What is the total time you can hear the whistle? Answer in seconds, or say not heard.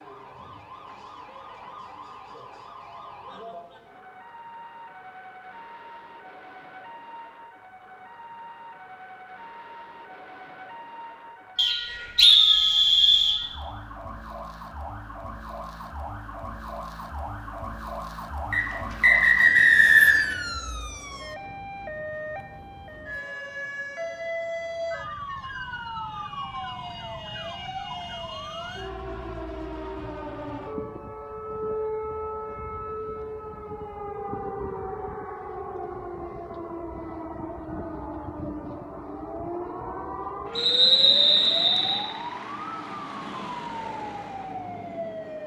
5 s.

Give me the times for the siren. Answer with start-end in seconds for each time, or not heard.
0.0-45.4.